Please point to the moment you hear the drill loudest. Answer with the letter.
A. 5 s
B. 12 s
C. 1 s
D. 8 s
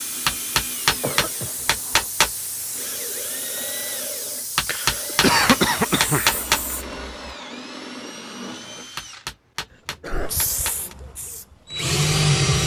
B.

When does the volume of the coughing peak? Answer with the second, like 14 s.
5 s.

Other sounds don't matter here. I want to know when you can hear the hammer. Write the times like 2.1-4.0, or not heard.
0.2-2.3, 4.5-6.6, 8.9-10.9.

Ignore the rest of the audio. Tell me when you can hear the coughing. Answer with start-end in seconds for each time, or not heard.
1.0-2.0, 4.7-6.4, 9.7-10.3.